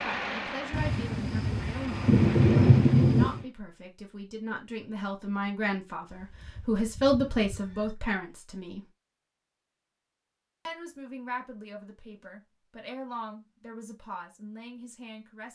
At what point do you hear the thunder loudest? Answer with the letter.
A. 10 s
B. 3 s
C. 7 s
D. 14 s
B.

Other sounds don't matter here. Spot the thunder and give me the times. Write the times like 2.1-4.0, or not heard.
0.7-3.5.